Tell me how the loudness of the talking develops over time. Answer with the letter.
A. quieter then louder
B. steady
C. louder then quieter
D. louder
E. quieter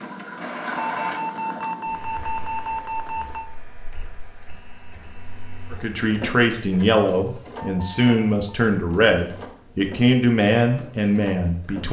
B.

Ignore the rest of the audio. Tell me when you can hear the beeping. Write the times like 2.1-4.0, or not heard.
0.8-3.5, 7.5-8.6.